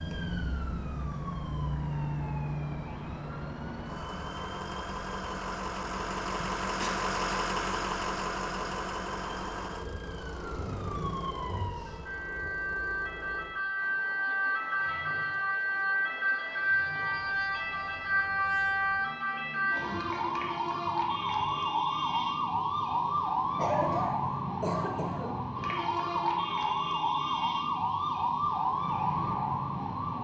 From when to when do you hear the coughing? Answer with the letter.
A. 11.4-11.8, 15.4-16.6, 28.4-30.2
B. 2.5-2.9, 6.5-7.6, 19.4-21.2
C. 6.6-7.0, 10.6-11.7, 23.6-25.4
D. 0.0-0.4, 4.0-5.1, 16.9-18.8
C.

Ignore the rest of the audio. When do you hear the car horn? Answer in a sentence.
You can't hear the car horn here.